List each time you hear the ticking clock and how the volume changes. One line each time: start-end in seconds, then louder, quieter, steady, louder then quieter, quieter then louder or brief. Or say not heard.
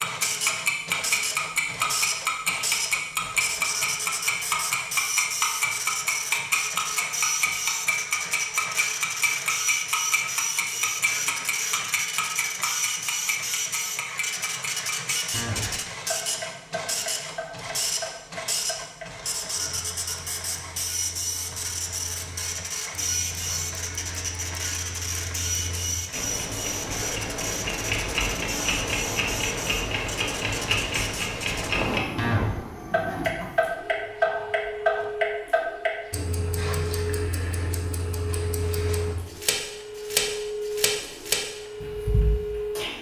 0.0-42.9 quieter then louder.